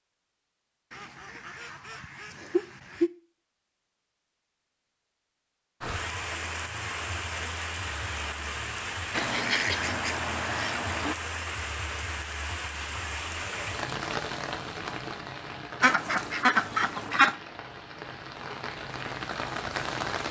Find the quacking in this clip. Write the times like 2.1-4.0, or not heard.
0.9-3.1, 9.1-11.2, 15.8-17.4.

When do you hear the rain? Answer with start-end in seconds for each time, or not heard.
5.8-20.2.